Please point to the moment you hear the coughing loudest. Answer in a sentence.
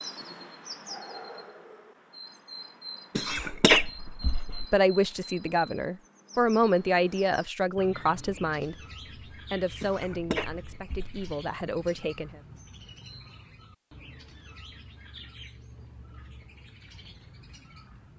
The volume of the coughing peaks at 4 seconds.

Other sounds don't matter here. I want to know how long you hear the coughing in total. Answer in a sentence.
The coughing can be heard for 3 seconds in total.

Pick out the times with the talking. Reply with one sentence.
You can hear the talking from 4.7 to 12.4 s.